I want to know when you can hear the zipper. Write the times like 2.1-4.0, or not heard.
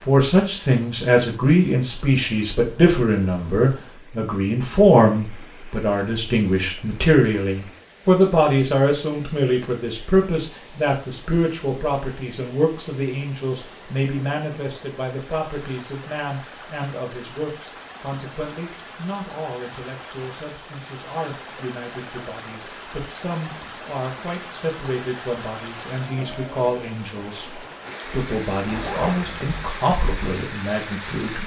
28.6-29.7.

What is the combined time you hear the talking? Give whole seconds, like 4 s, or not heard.
31 s.